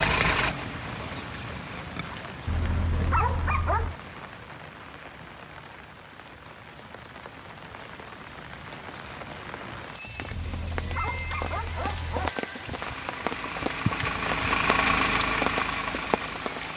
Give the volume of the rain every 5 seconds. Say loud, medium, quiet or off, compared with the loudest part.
medium, medium, loud, loud.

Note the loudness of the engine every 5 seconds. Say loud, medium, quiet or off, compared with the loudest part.
loud, off, loud, loud.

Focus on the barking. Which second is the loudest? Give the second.
3 s.